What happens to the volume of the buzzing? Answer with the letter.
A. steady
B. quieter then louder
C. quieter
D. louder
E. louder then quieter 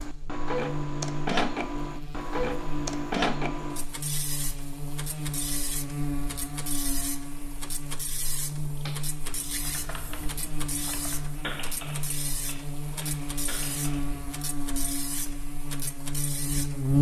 A.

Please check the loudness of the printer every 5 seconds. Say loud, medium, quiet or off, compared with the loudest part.
loud, medium, medium, medium.